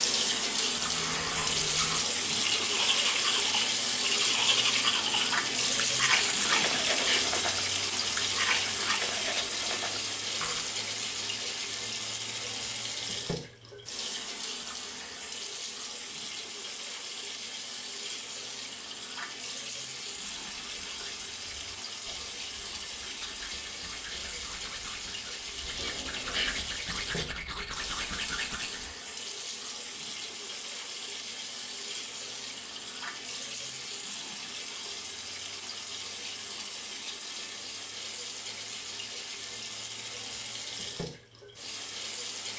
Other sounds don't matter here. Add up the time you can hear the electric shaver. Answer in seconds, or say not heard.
not heard.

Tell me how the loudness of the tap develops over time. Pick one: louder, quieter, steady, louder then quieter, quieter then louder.
quieter.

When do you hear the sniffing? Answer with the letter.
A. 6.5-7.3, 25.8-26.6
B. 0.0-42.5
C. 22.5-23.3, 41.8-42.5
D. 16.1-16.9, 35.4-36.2
A.